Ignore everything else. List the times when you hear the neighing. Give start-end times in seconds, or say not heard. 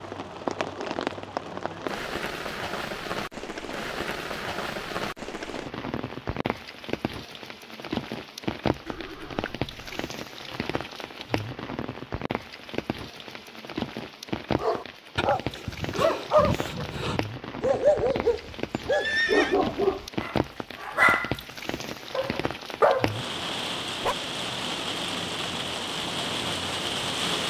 8.8-10.1, 18.9-19.6.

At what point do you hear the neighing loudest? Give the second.
19 s.